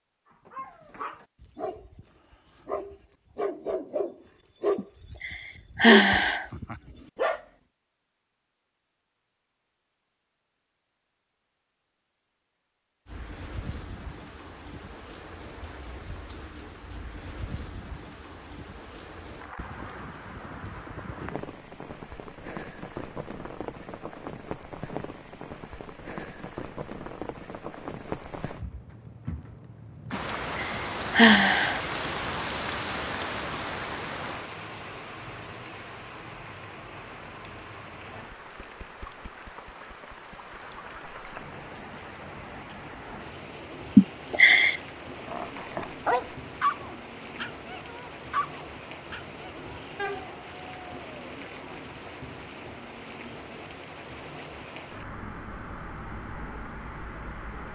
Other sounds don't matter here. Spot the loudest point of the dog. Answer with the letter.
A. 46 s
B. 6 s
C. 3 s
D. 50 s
B.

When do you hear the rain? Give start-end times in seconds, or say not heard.
13.1-57.7.